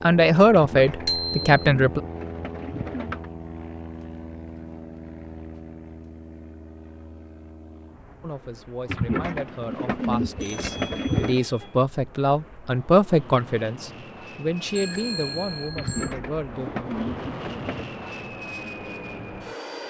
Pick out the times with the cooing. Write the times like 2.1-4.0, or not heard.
0.5-3.3, 8.8-11.4, 15.8-17.9.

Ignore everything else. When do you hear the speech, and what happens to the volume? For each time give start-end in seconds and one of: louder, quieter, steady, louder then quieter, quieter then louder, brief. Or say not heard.
0.0-2.0 brief
8.2-17.0 louder then quieter.